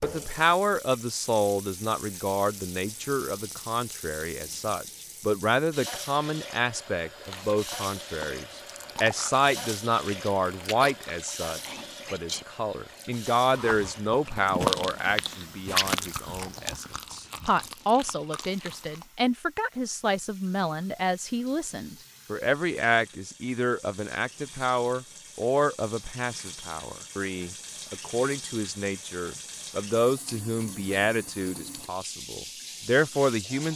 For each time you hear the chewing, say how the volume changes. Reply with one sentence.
The chewing can be heard from 7.2 to 19.1 s, getting louder then quieter.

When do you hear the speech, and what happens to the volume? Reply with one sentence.
The speech can be heard from 0.0 to 33.7 s, at a steady volume.